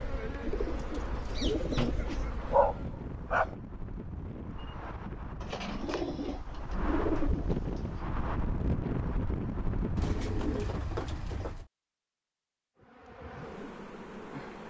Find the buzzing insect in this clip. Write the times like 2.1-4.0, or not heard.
0.0-3.0, 12.8-14.6.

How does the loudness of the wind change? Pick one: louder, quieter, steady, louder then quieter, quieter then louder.
louder.